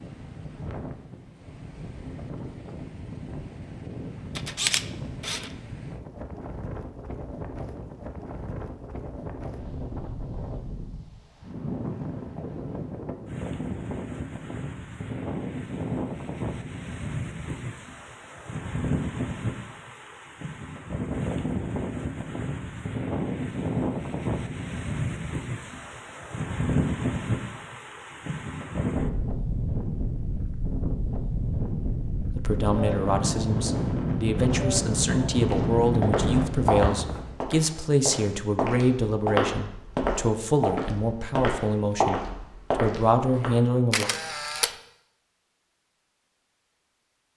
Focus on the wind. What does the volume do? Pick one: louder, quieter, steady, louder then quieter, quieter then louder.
louder.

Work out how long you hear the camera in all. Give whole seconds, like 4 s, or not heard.
2 s.